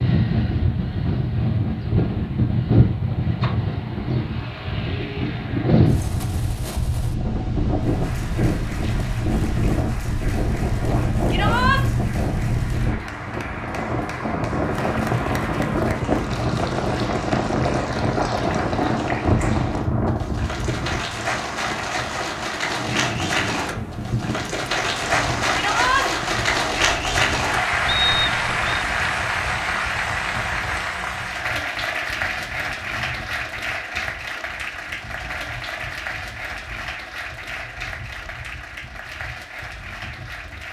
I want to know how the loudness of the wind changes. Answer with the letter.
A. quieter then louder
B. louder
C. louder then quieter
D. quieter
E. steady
D.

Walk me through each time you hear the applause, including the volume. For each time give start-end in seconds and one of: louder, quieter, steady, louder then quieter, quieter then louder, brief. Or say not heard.
7.8-40.6 louder then quieter.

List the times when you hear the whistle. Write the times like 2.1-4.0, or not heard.
27.9-28.9.